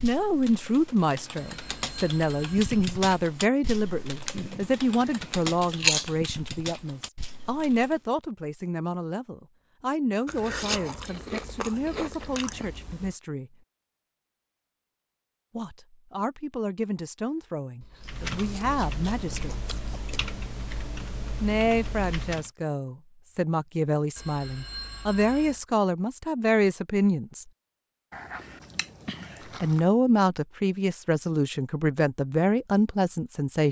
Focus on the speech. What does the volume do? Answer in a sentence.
The loudness of the speech goes down, then up.